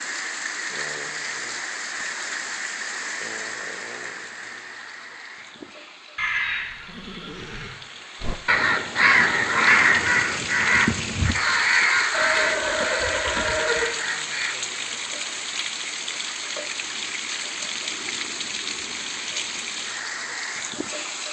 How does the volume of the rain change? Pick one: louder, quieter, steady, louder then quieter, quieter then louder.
quieter then louder.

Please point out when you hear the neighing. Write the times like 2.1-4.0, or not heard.
6.2-7.8, 12.1-13.9.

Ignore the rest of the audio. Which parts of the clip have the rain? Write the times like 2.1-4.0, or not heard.
0.0-21.2.